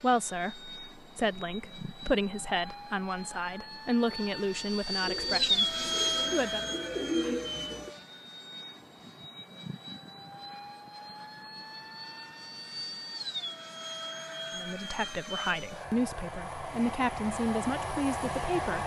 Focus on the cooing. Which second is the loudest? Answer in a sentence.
The loudest moment of the cooing is at 7 seconds.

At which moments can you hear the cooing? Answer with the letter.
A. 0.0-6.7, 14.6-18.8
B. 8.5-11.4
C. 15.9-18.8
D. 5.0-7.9
D.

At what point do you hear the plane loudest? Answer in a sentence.
The volume of the plane peaks at 6 seconds.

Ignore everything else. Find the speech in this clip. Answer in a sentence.
The speech can be heard from 0.0 to 6.7 s and from 14.6 to 18.8 s.